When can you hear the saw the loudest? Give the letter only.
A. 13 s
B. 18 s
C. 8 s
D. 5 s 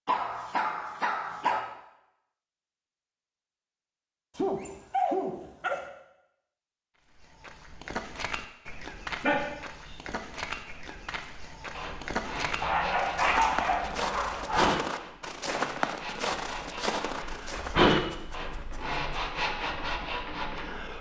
B.